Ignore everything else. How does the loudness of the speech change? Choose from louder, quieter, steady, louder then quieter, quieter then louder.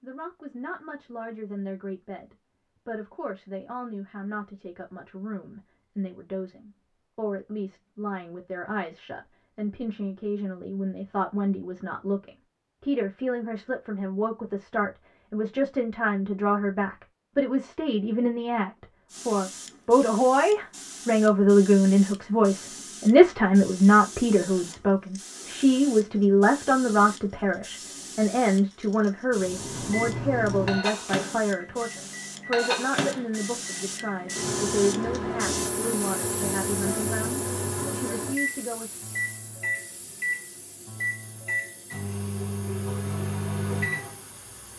louder then quieter.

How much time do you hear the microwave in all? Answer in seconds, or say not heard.
15 s.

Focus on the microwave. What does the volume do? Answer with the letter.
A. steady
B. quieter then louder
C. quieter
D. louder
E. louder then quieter
A.